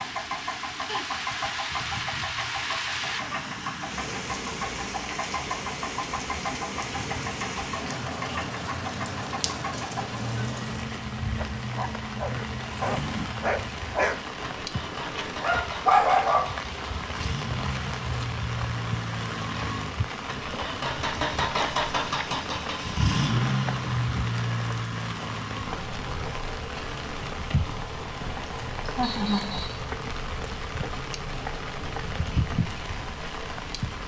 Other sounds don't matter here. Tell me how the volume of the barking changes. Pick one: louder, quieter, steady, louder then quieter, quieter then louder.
quieter then louder.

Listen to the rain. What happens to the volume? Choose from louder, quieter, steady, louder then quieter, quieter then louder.
steady.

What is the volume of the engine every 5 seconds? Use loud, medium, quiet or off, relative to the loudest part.
medium, medium, medium, medium, loud, medium, quiet.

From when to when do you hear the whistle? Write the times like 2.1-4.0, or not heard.
29.0-29.9.